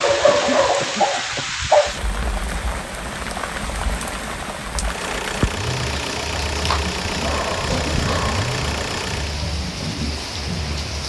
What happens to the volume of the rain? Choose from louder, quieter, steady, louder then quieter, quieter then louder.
steady.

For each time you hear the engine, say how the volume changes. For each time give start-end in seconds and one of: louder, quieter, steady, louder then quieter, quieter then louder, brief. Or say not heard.
4.8-9.4 steady.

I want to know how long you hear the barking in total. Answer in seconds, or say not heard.
4 s.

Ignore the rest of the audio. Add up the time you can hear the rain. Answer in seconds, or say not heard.
11 s.